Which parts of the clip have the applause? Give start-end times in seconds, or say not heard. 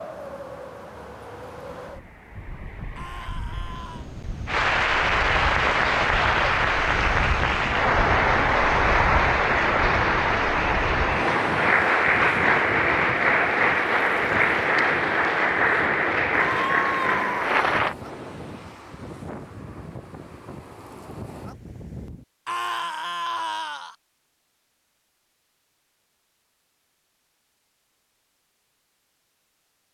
4.5-17.9.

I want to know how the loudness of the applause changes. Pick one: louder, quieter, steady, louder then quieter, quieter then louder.
steady.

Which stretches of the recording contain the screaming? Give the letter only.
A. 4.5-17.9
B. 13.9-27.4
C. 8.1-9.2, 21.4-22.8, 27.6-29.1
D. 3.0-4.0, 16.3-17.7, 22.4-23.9
D.